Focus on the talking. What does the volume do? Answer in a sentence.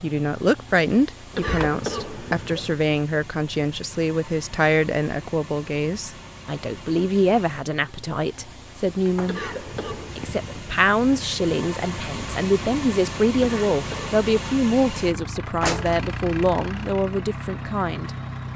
The loudness of the talking stays about the same.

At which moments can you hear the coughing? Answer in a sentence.
The coughing can be heard from 1.3 to 2.9 s, from 9.2 to 10.7 s and from 13.3 to 14.2 s.